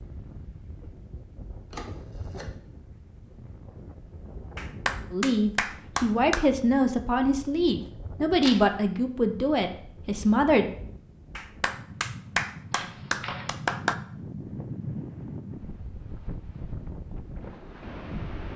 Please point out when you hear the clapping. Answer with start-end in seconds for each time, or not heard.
4.5-6.5, 11.3-13.9.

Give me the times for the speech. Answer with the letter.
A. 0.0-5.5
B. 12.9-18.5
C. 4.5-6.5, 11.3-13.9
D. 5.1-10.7
D.